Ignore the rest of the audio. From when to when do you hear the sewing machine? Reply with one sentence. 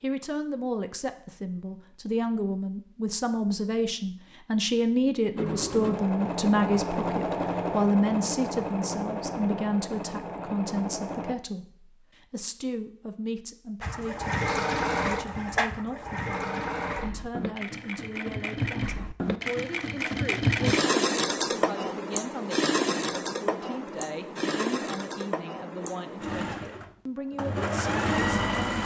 The sewing machine can be heard from 5.3 to 11.3 s and from 13.8 to 28.8 s.